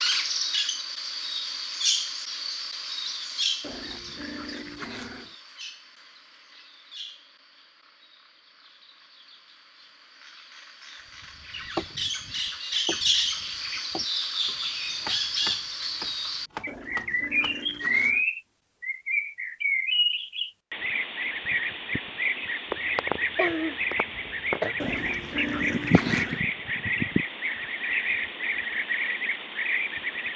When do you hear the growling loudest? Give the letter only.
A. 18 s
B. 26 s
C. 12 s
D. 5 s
B.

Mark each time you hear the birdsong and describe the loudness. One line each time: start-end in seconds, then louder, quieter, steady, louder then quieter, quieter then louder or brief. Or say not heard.
0.0-30.3 quieter then louder.